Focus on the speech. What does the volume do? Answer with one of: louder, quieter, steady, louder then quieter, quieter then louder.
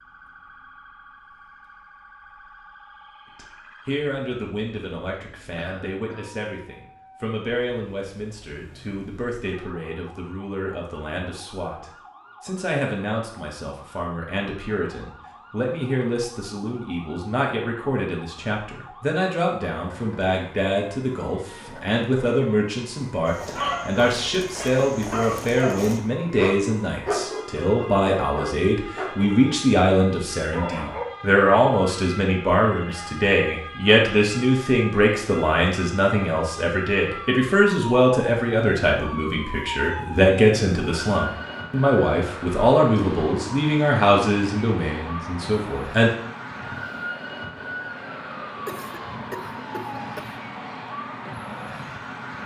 louder.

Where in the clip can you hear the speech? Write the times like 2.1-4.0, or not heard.
3.4-46.1.